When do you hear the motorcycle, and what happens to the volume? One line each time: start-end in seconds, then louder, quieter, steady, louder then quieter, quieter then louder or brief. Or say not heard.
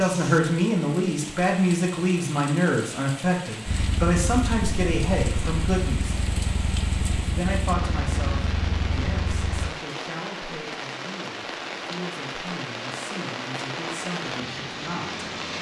3.6-9.7 steady.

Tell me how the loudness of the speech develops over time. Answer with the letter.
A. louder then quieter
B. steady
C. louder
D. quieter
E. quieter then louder
D.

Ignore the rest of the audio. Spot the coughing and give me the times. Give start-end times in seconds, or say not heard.
not heard.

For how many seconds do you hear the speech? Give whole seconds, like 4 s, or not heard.
14 s.